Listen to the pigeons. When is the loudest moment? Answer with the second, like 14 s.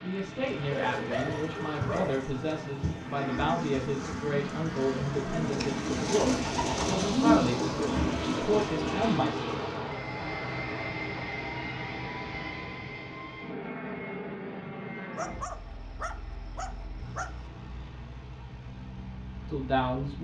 7 s.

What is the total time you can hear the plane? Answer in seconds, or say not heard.
20 s.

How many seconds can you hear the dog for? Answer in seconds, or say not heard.
5 s.